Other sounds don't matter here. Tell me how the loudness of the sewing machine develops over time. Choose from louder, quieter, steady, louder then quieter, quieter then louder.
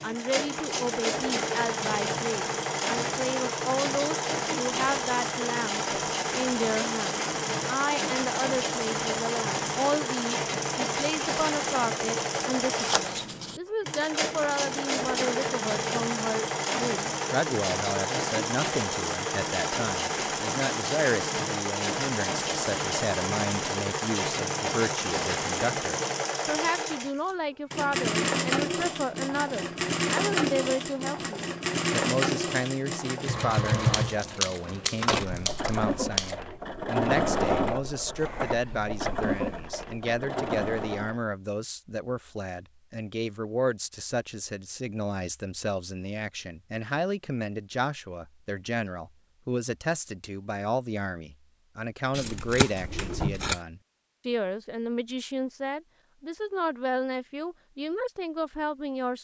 steady.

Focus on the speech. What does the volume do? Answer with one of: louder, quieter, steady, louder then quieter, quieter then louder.
steady.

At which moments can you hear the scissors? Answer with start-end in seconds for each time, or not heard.
12.3-13.6, 33.7-36.4, 52.1-53.6.